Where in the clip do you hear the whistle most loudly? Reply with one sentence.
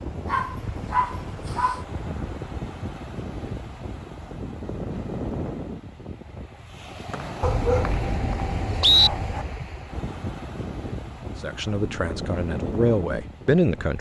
The volume of the whistle peaks at 9 seconds.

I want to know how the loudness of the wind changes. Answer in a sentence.
The volume of the wind stays about the same.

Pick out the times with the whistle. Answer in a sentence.
You can hear the whistle from 7.1 to 9.1 s.